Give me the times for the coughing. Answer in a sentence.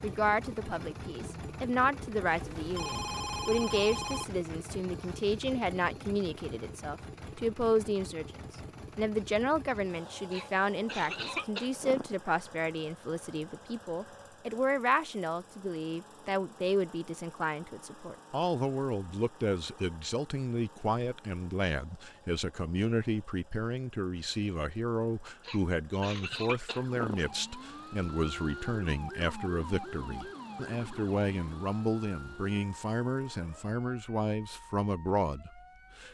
You can hear the coughing from 10.3 to 12.2 s and from 25.4 to 27.2 s.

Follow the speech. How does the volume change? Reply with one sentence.
The loudness of the speech stays about the same.